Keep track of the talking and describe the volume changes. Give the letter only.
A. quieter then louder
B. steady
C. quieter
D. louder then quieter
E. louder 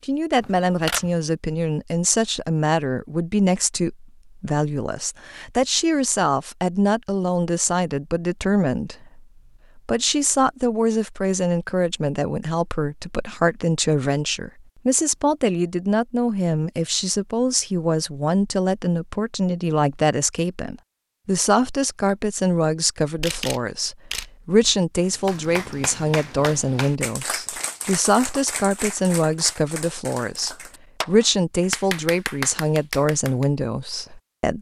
B.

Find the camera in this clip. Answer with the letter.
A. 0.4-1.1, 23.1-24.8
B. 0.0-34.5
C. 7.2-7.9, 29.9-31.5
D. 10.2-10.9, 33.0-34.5
A.